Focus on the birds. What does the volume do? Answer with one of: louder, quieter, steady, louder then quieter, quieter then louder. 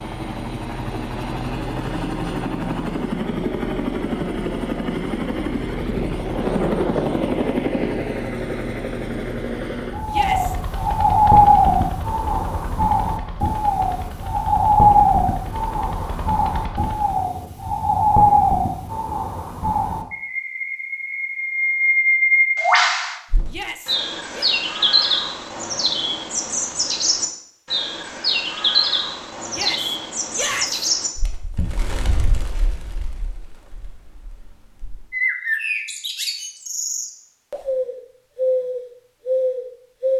quieter.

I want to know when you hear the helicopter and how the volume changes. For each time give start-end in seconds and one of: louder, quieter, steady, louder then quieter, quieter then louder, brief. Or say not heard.
0.0-17.2 quieter.